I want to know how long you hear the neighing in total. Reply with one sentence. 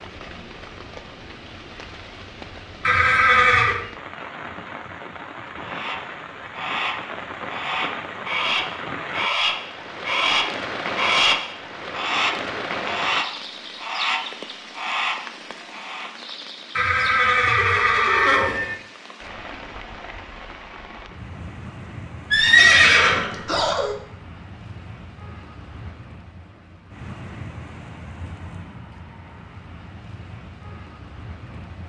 The neighing can be heard for 5 seconds in total.